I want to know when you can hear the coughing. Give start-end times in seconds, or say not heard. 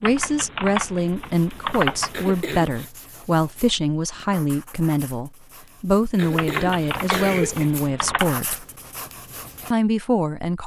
2.1-2.9, 6.2-7.7.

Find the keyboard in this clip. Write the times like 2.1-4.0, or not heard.
0.0-2.4, 6.3-8.4.